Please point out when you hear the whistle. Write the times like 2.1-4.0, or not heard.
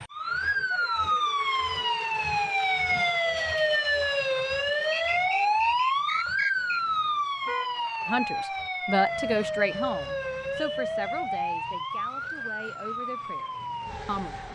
4.9-6.8.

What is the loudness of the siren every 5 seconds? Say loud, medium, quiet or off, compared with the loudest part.
loud, loud, medium.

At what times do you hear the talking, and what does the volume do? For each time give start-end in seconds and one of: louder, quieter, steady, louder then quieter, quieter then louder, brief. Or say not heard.
8.1-14.4 quieter.